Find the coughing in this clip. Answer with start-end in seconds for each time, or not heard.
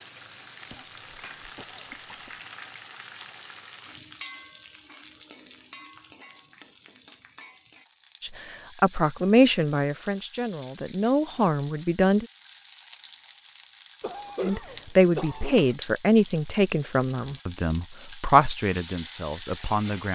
0.7-2.4, 14.0-15.8.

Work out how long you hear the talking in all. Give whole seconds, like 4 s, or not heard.
10 s.